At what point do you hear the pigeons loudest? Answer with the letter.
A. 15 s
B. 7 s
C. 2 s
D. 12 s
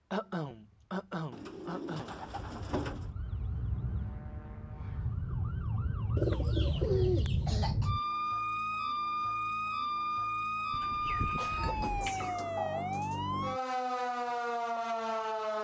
B.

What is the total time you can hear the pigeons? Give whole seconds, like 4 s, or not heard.
5 s.